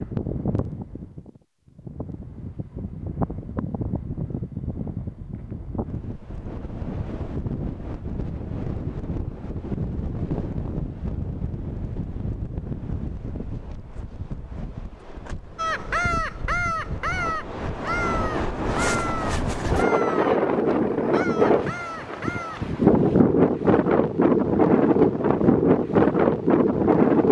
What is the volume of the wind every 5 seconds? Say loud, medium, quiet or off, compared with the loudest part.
quiet, quiet, quiet, medium, loud, loud.